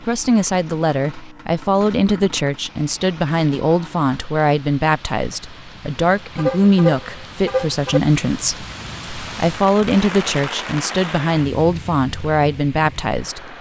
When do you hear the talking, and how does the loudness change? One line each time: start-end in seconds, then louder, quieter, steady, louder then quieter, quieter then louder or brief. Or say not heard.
0.0-13.5 steady.